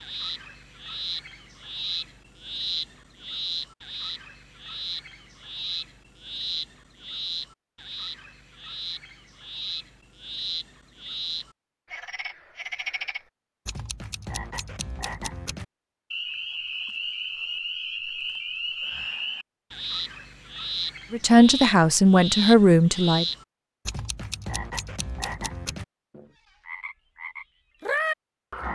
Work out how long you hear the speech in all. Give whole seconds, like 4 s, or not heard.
2 s.